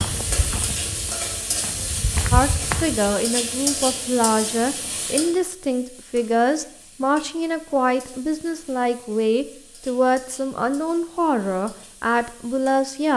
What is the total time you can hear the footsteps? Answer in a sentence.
The footsteps can be heard for 3 seconds in total.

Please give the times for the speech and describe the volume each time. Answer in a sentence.
The speech can be heard from 2.3 to 13.1 s, at a steady volume.